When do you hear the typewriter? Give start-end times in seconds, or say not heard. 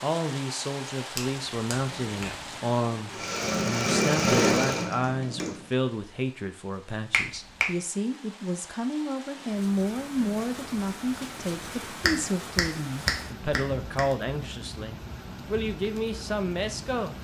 not heard.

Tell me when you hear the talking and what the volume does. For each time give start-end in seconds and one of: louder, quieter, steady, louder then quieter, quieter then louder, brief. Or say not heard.
0.0-17.1 steady.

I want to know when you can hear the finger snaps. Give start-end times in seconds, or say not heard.
1.1-2.4, 7.1-7.7, 12.0-14.0.